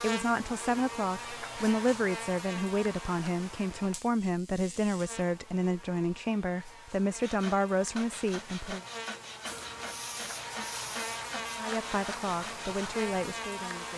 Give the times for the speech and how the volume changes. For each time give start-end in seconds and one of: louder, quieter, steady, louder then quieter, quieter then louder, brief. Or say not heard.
0.0-8.8 steady
11.6-13.9 brief.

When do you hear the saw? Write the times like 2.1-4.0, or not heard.
7.2-13.1.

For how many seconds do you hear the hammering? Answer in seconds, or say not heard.
not heard.